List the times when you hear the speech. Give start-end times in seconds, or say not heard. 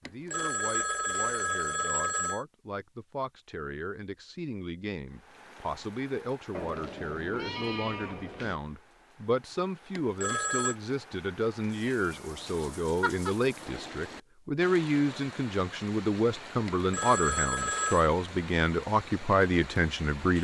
0.0-20.4.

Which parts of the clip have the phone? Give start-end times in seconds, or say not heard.
0.1-2.5, 9.9-10.8, 16.6-18.1.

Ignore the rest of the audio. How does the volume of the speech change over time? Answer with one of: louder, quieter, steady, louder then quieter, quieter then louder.
louder.